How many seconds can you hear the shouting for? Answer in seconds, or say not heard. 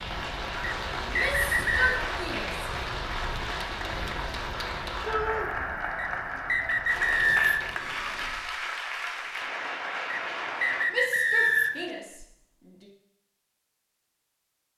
4 s.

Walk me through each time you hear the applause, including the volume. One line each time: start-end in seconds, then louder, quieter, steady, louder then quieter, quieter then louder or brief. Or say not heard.
0.0-10.8 steady.